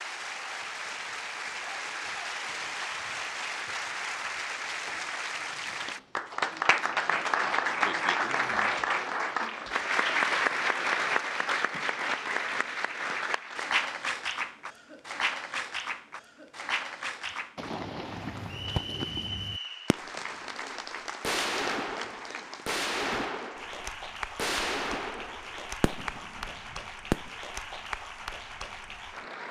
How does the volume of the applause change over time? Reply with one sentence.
The volume of the applause goes up, then down.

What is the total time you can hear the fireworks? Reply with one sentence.
You can hear the fireworks for 9 seconds altogether.